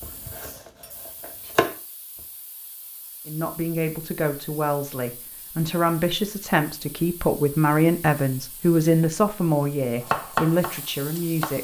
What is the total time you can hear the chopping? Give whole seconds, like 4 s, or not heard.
4 s.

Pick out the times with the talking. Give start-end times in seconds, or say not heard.
3.2-11.5.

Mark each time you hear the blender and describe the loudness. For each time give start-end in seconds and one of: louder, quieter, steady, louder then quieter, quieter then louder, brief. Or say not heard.
not heard.